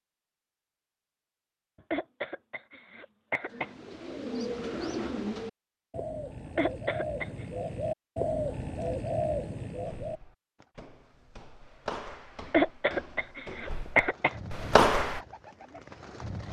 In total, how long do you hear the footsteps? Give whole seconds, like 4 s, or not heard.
5 s.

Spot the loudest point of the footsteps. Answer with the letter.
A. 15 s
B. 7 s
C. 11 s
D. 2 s
A.